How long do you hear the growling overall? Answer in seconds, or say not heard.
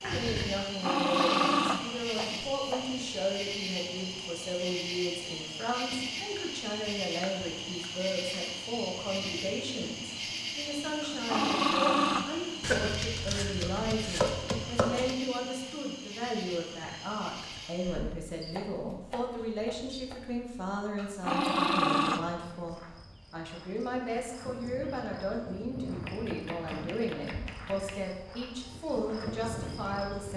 5 s.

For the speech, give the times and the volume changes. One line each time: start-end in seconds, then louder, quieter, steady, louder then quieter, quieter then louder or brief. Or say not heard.
0.0-30.3 steady.